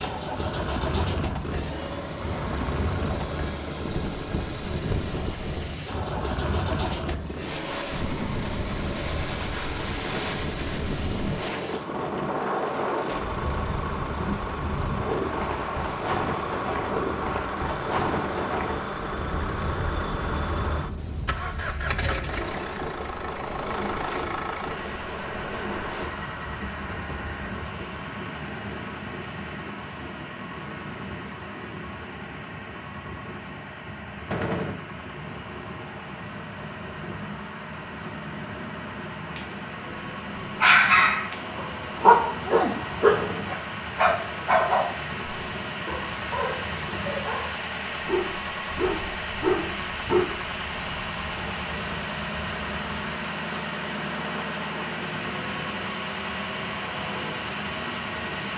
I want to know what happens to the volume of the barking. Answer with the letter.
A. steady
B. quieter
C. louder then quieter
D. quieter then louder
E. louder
D.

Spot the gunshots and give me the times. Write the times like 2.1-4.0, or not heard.
10.0-10.5, 34.3-34.8, 43.0-43.5.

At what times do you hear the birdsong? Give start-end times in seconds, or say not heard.
not heard.